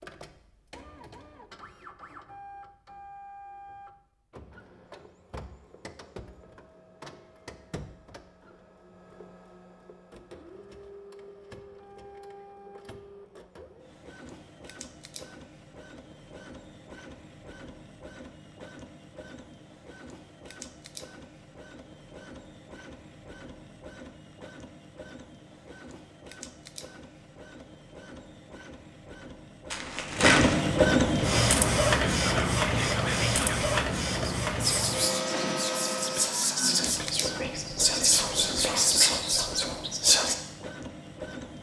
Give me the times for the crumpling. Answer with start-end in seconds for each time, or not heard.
29.7-30.7.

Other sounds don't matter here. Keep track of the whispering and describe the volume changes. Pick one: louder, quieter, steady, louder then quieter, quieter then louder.
louder.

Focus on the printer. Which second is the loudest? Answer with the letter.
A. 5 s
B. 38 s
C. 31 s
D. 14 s
C.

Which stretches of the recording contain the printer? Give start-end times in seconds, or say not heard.
0.0-41.5.